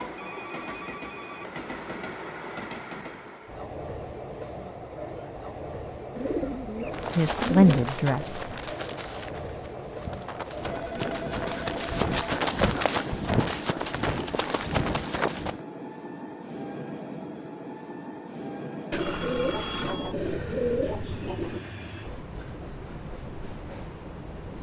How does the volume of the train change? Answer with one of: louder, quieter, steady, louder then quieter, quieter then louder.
steady.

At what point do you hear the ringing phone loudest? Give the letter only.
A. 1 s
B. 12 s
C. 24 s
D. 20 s
D.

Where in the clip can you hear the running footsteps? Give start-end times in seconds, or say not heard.
6.9-15.6.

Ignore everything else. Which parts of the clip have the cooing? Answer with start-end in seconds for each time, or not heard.
6.2-7.8, 18.9-21.6.